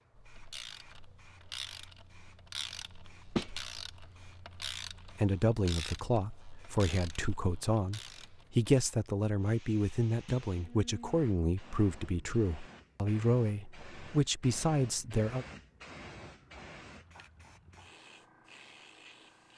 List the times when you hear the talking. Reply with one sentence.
The talking can be heard from 5.2 to 15.4 s.